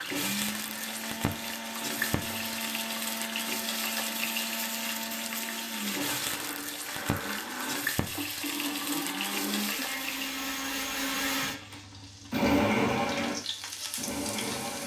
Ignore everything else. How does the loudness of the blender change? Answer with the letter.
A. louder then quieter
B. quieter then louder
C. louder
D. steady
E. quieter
C.